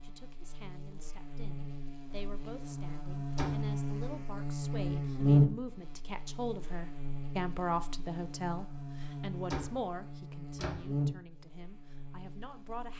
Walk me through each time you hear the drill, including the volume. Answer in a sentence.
The drill can't be heard in this clip.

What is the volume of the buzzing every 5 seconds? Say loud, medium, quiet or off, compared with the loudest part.
medium, loud, medium.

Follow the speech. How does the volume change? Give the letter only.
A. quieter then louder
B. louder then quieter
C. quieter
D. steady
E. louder
B.